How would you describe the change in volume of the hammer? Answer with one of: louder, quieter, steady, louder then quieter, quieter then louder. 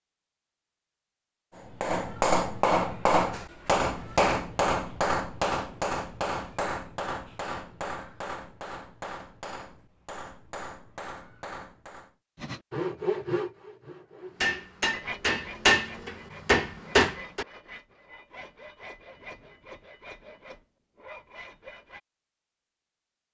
quieter then louder.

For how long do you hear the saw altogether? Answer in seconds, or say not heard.
10 s.